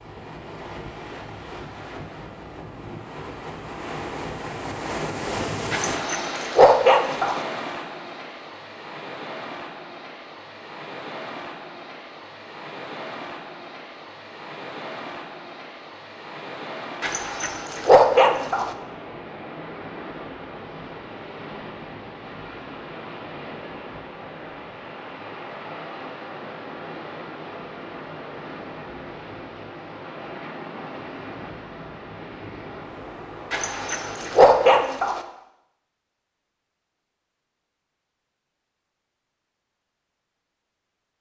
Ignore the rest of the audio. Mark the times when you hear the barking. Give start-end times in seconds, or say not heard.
5.7-7.4, 17.0-18.7, 33.5-35.2.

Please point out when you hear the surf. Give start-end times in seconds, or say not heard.
0.0-34.8.